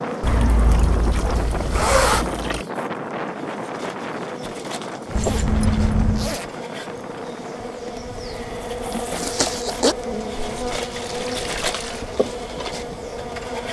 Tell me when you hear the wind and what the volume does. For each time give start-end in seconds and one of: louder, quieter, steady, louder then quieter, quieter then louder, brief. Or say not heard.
0.0-13.6 quieter.